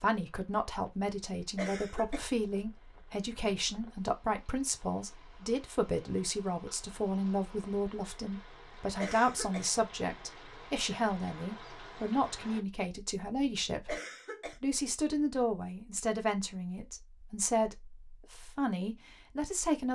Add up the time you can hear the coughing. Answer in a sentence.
You can hear the coughing for 2 seconds altogether.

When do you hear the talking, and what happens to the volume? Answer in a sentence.
You can hear the talking from 0.0 to 13.9 s, at a steady volume; and from 14.6 to 19.9 s, getting quieter then louder.